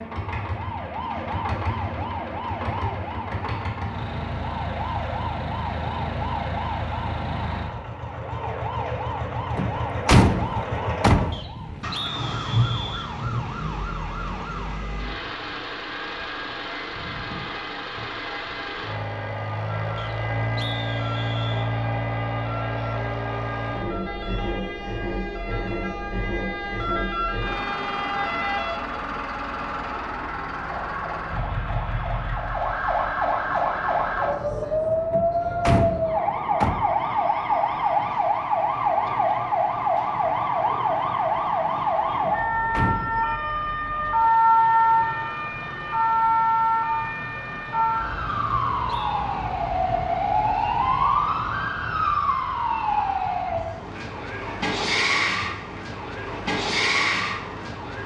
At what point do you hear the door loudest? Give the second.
10 s.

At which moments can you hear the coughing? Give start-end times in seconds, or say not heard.
not heard.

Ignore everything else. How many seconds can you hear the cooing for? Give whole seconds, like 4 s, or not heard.
not heard.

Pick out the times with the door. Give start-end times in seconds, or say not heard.
9.6-11.8, 35.1-36.8, 42.2-43.1.